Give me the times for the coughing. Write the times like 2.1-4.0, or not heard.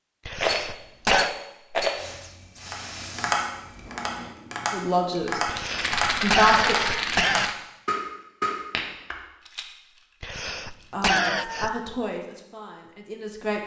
0.2-1.4, 5.5-7.5, 10.2-11.8.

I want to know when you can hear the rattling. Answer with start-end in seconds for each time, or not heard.
0.3-2.0, 5.5-7.5, 9.4-11.1.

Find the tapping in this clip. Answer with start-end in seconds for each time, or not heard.
2.7-9.2.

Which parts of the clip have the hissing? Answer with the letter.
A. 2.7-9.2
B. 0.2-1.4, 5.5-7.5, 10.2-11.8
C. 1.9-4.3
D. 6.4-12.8
C.